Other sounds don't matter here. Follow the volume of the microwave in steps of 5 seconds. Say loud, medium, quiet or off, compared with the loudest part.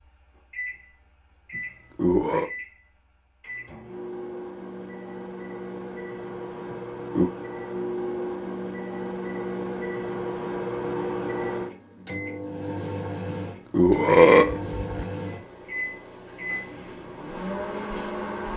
medium, loud, loud, loud.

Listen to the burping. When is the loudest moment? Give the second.
14 s.